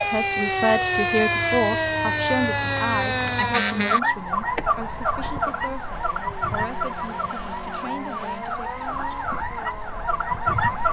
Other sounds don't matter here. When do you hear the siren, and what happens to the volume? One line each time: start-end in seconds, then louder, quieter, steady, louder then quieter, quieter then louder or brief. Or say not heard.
0.0-10.8 quieter.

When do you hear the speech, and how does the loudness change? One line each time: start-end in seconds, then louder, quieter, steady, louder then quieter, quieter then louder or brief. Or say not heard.
0.0-8.7 quieter.